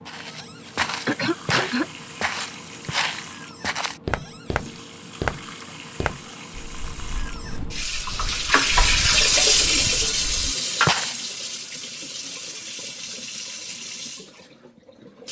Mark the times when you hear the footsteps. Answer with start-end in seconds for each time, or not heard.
0.1-11.2.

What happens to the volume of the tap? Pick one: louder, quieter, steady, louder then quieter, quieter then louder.
louder then quieter.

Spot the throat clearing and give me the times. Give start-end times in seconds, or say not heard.
0.9-1.9.